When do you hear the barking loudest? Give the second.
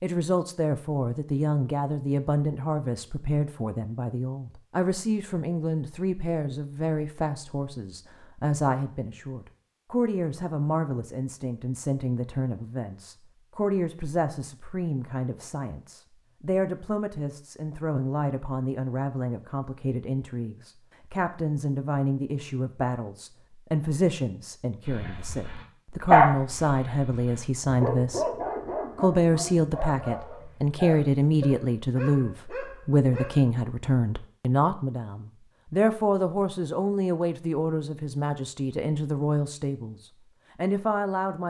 26 s.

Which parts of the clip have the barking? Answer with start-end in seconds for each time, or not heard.
24.9-33.4.